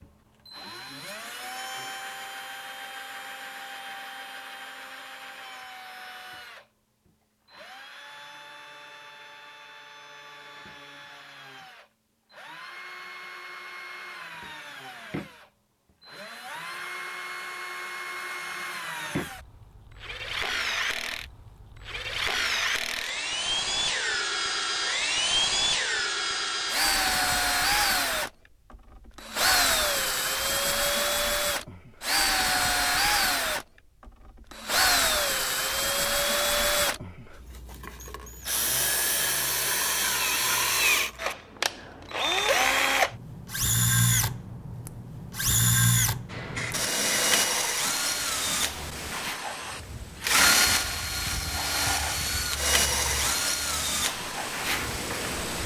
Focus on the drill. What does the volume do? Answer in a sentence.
The volume of the drill goes up.